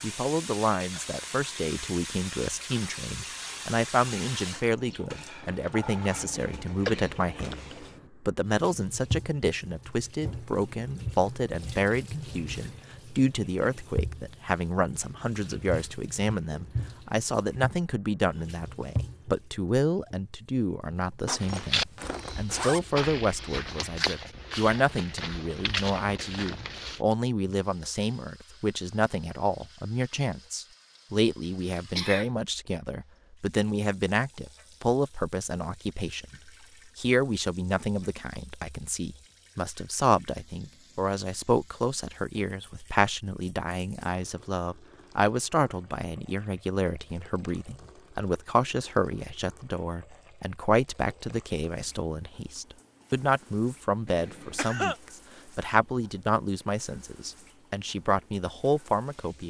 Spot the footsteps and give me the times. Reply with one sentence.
The footsteps can be heard from 21.4 to 27.0 s.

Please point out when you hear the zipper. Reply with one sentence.
You can hear the zipper from 21.2 to 22.8 s.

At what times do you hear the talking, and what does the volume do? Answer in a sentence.
You can hear the talking from 0.0 to 59.4 s, at a steady volume.